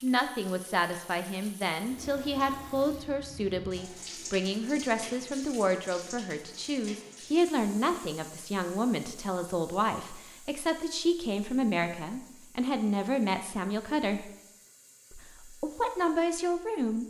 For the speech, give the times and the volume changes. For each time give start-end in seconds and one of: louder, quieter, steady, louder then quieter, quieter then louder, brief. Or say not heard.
0.0-14.3 steady
15.1-17.0 brief.